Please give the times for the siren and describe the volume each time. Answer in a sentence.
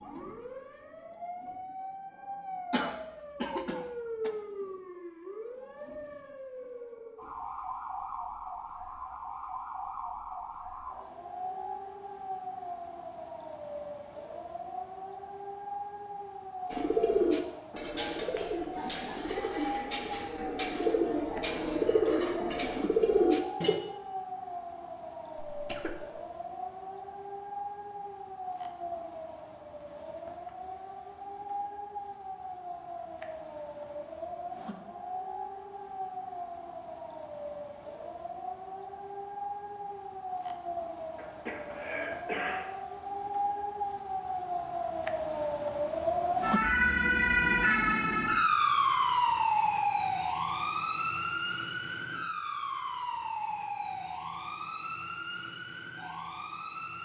The siren can be heard from 0.0 to 57.0 s, getting louder.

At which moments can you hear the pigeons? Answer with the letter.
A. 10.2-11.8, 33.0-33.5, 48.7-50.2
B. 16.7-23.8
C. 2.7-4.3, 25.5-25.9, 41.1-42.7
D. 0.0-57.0
B.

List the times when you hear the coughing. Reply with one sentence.
You can hear the coughing from 2.7 to 4.3 s, from 25.5 to 25.9 s and from 41.1 to 42.7 s.